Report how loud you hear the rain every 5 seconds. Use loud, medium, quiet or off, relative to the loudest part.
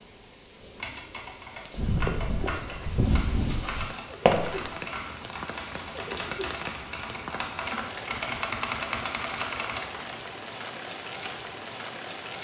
medium, loud, loud.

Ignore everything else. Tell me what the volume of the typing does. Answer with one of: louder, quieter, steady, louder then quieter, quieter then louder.
louder.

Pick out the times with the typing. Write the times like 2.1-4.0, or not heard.
0.6-10.1.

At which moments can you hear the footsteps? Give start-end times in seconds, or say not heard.
1.7-4.7.